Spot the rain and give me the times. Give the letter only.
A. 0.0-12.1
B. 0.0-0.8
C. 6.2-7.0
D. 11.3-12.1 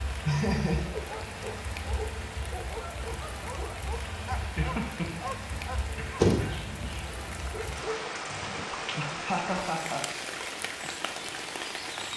A.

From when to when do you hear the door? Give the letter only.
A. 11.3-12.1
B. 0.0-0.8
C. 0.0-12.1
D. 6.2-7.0
D.